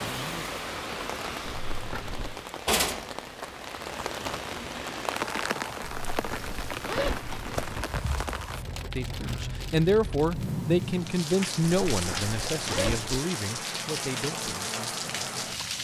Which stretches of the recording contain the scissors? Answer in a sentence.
The scissors can't be heard in this clip.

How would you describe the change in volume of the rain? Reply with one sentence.
The volume of the rain stays about the same.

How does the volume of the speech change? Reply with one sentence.
The loudness of the speech goes down.